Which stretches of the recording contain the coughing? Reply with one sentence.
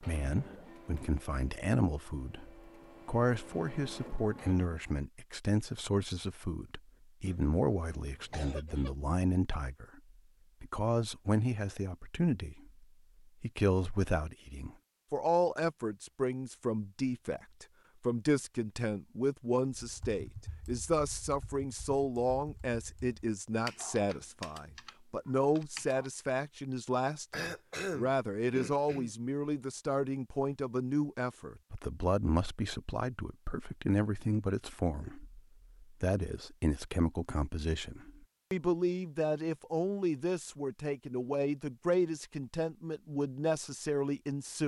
You can hear the coughing from 7.2 to 8.9 s and from 27.3 to 29.1 s.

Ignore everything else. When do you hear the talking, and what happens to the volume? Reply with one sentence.
The talking can be heard from 0.0 to 10.0 s, at a steady volume; and from 10.6 to 44.6 s, at a steady volume.